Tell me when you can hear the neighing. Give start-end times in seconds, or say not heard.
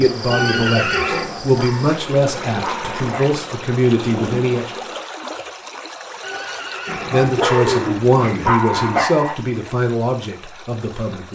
0.3-1.3, 6.2-8.1.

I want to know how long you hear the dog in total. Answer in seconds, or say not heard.
5 s.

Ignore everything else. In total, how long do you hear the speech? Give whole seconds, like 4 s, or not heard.
9 s.